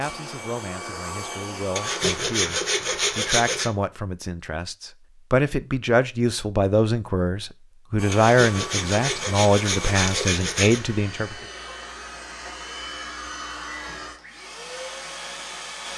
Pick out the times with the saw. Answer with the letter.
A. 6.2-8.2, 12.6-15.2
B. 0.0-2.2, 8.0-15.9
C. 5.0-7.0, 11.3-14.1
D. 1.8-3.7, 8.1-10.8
D.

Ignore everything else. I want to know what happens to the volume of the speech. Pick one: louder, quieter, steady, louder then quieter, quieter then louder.
louder.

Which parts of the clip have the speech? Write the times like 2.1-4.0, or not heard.
0.0-11.3.